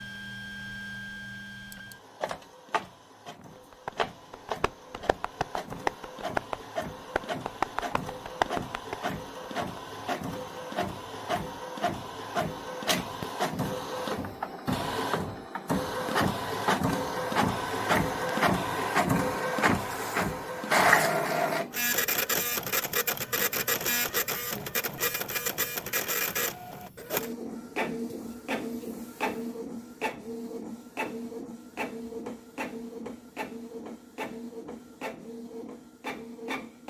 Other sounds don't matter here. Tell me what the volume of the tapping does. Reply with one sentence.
The volume of the tapping goes up.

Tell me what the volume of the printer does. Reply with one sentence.
The volume of the printer goes up, then down.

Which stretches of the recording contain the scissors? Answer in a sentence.
The scissors can't be heard in this clip.